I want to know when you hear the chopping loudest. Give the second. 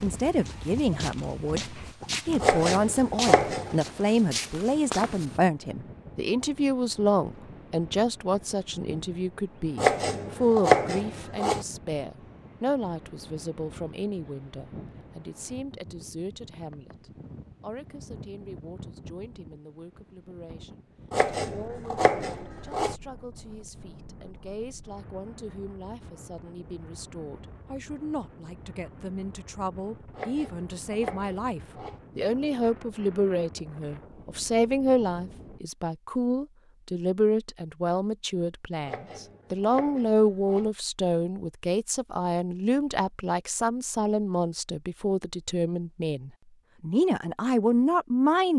11 s.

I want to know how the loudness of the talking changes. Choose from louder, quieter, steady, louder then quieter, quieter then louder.
quieter then louder.